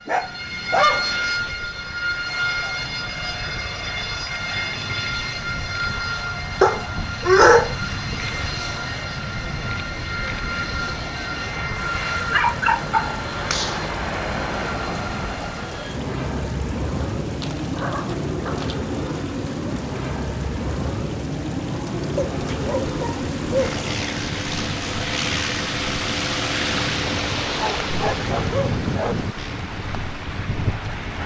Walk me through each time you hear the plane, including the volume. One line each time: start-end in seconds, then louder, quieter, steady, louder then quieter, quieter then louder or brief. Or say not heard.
0.0-31.2 steady.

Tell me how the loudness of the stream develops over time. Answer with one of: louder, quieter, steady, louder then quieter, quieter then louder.
louder.